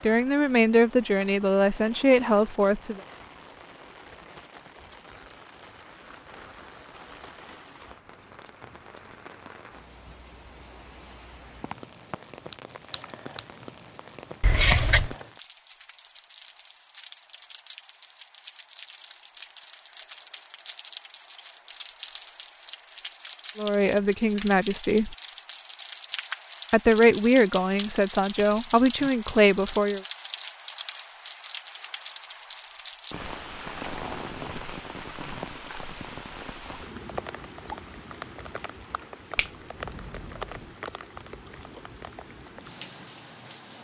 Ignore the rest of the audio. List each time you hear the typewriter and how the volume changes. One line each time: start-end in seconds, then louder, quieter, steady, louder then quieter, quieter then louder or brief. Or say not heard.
not heard.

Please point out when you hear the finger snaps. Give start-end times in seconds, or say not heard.
11.6-13.4, 39.4-40.8.